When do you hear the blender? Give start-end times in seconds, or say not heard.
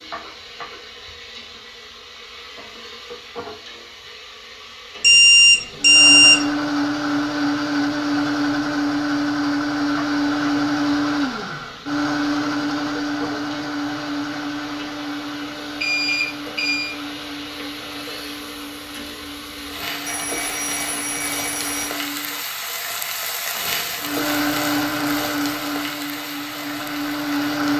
5.8-22.4, 24.0-27.7.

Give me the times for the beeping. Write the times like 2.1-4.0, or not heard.
5.0-6.4, 15.8-16.9, 20.1-21.9.